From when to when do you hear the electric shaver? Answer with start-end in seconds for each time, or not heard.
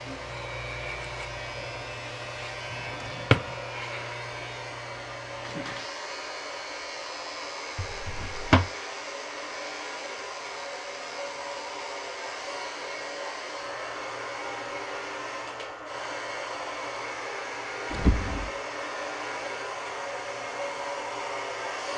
0.0-21.8.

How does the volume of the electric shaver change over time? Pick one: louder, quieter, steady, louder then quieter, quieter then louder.
quieter.